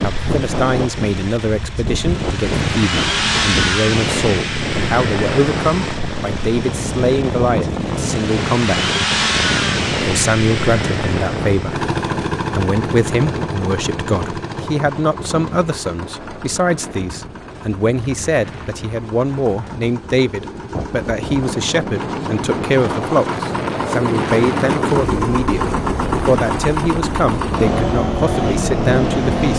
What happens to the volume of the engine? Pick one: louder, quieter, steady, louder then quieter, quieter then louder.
quieter then louder.